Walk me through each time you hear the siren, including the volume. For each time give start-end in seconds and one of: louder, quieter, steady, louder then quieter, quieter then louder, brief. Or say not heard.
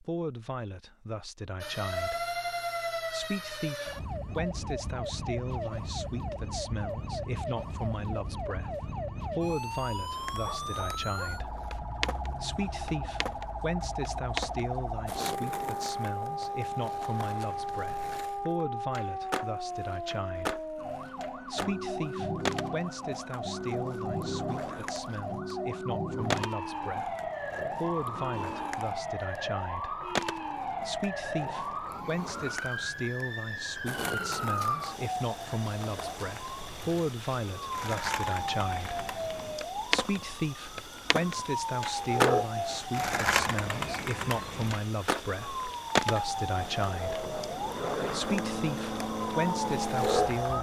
1.6-50.5 steady.